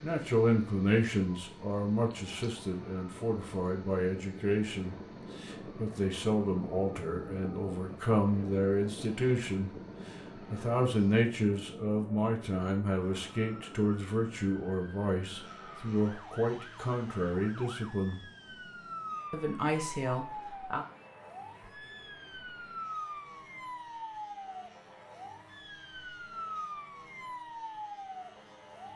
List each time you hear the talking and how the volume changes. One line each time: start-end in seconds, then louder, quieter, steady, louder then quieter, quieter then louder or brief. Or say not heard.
0.0-18.2 steady
19.3-20.9 brief.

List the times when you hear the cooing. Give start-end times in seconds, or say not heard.
not heard.